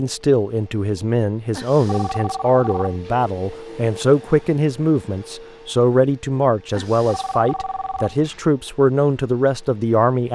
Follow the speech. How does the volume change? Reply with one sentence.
The loudness of the speech stays about the same.